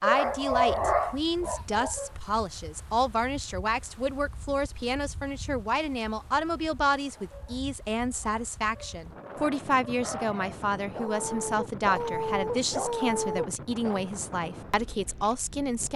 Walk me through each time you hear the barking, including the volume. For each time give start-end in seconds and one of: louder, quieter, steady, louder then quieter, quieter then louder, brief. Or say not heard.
0.0-2.1 brief
7.2-14.1 louder.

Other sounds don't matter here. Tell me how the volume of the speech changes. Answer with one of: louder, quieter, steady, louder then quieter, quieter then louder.
steady.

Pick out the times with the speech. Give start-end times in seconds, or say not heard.
0.0-15.9.